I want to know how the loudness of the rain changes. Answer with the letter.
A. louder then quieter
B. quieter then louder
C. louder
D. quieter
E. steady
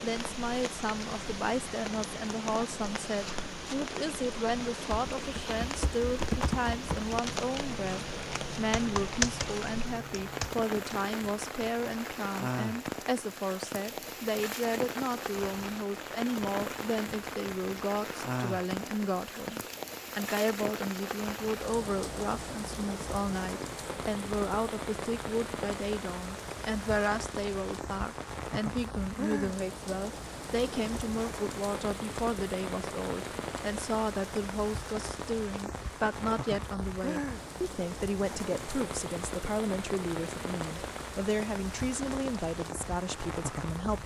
E.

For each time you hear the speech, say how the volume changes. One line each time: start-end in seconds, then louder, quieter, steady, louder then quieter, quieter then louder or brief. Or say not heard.
0.0-44.0 steady.